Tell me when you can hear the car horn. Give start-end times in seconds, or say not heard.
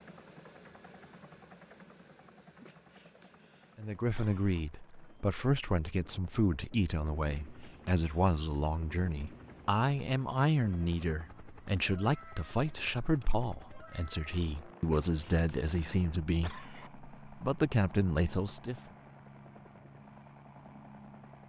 not heard.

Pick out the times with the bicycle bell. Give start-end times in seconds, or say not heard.
1.3-1.9, 13.2-13.8.